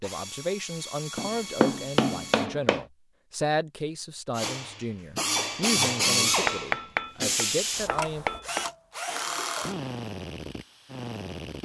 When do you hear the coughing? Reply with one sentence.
The coughing can be heard from 9.1 to 9.8 s.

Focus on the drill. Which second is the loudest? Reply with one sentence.
The loudest moment of the drill is at 6 seconds.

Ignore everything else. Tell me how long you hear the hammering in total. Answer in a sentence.
The hammering can be heard for 4 seconds in total.